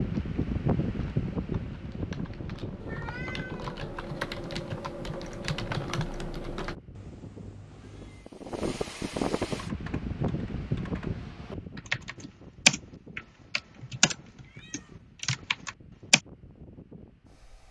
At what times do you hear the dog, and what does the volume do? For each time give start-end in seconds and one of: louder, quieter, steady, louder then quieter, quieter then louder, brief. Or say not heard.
not heard.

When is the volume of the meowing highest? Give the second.
3 s.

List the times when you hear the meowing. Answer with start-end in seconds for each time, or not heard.
2.8-4.0, 7.0-8.3, 14.4-15.0.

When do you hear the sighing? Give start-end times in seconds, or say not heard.
not heard.